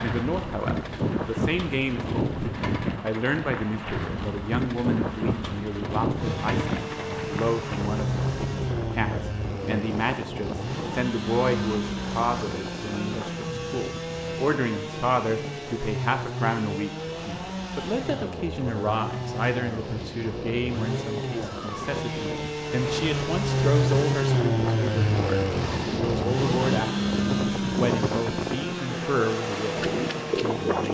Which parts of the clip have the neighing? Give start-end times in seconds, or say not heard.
not heard.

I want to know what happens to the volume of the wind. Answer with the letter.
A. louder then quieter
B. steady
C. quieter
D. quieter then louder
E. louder
D.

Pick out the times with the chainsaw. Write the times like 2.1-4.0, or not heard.
6.2-30.9.